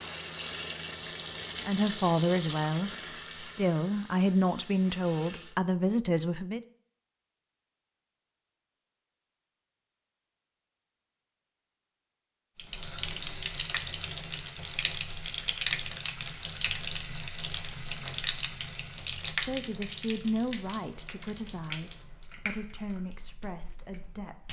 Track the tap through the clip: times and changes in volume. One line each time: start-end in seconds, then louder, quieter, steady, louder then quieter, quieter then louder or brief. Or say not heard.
0.0-5.5 quieter
12.6-24.4 quieter.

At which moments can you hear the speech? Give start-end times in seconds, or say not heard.
1.6-6.6, 19.4-24.4.